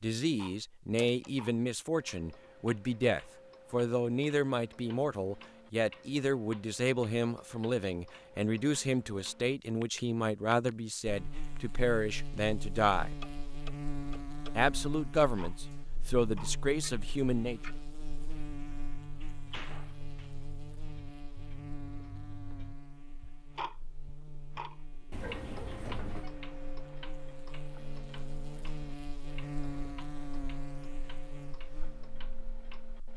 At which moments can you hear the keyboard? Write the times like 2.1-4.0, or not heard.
not heard.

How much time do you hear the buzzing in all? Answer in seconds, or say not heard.
22 s.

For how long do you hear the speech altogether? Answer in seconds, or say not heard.
16 s.